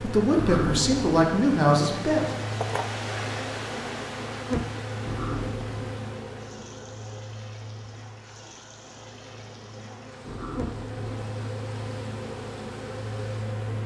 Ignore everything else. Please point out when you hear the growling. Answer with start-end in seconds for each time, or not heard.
0.3-1.1, 5.0-6.0, 10.2-11.2.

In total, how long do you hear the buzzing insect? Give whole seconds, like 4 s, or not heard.
14 s.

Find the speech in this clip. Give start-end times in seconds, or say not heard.
0.0-2.2.